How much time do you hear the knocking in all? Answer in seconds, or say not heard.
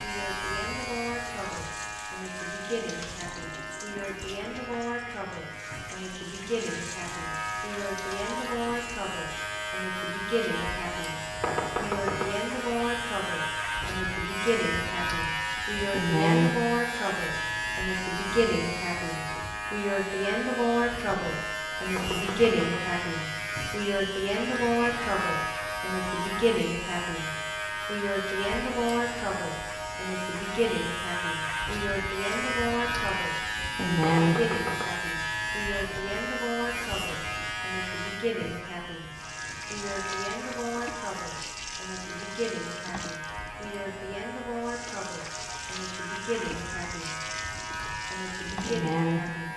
3 s.